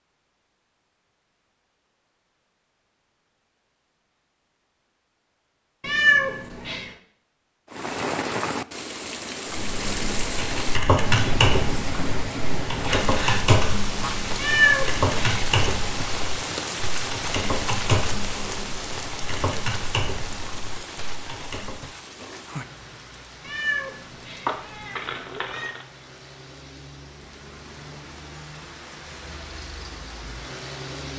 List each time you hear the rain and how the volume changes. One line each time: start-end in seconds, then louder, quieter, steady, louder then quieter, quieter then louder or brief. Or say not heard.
7.7-31.1 quieter.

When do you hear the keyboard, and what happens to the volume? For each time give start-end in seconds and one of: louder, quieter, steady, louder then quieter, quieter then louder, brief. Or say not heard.
9.5-21.9 quieter.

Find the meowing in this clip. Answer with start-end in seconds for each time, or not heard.
5.8-6.9, 14.3-15.4, 23.4-25.8.